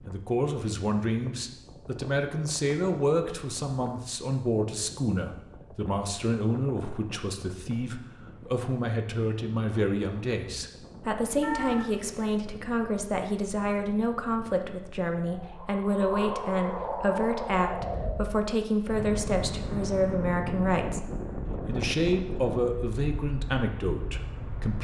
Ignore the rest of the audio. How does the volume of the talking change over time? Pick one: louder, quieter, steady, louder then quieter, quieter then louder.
steady.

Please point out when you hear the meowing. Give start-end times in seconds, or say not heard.
11.4-12.2.